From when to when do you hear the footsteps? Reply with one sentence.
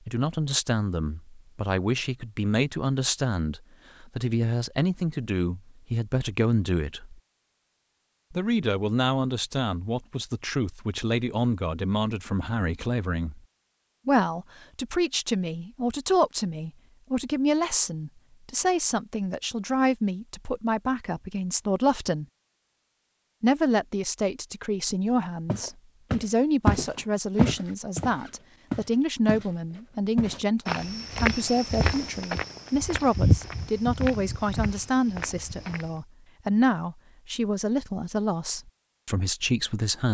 You can hear the footsteps from 25.4 to 29.5 s and from 30.1 to 36.0 s.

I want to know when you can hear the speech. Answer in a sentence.
You can hear the speech from 0.1 to 7.2 s, from 8.3 to 13.4 s, from 14.1 to 22.2 s and from 23.4 to 40.0 s.